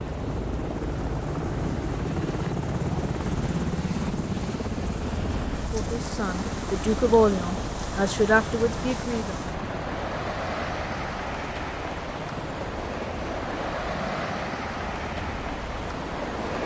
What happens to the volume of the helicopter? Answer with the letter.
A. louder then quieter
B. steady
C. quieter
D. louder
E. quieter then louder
C.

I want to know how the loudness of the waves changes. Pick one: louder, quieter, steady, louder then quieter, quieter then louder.
louder.